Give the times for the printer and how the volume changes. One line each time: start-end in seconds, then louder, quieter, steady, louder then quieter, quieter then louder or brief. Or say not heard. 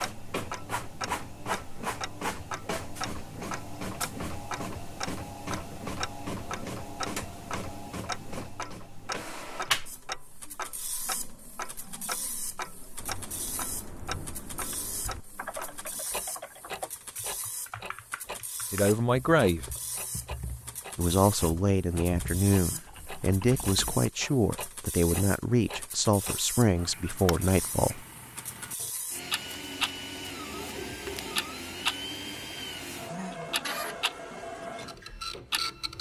0.0-35.9 quieter then louder.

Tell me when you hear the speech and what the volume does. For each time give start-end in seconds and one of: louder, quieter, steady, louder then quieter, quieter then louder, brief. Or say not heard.
18.7-19.8 brief
20.9-28.1 steady.